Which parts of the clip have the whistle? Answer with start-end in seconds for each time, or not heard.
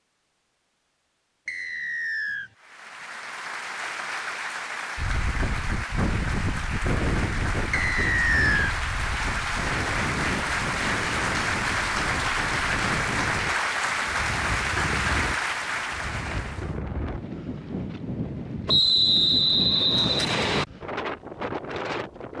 1.4-2.5, 7.7-8.8, 18.6-20.6.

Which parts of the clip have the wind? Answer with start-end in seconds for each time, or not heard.
5.0-22.3.